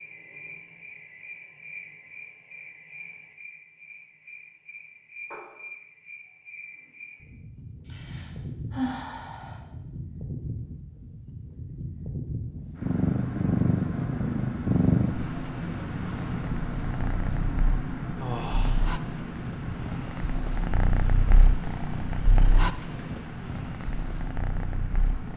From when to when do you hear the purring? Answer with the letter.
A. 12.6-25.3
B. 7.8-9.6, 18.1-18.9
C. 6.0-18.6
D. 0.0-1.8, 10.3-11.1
A.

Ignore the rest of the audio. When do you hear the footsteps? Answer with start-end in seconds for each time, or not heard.
not heard.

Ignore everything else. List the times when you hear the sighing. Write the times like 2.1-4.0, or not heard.
7.8-9.6, 18.1-18.9.